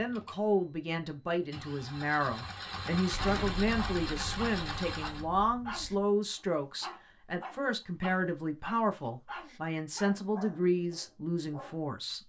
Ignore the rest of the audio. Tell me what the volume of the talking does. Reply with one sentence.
The volume of the talking stays about the same.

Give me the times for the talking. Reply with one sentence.
You can hear the talking from 0.0 to 12.2 s.